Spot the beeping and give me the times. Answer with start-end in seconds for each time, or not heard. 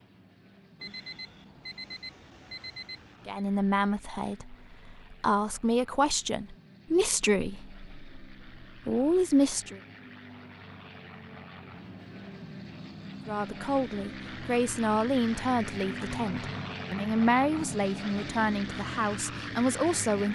0.8-3.5, 15.8-16.8.